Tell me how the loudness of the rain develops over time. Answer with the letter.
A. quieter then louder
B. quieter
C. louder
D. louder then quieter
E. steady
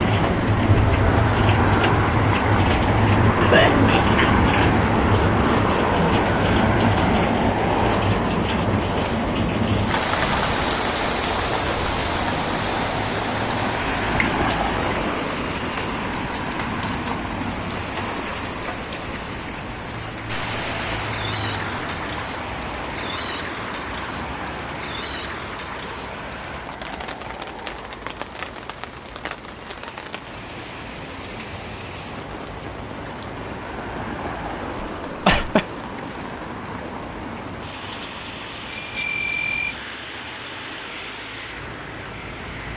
B.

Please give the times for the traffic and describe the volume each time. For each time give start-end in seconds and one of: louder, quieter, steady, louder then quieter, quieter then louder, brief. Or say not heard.
0.0-42.7 quieter.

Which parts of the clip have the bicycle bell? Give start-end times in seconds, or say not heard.
10.1-10.7, 21.6-22.4, 38.6-39.8.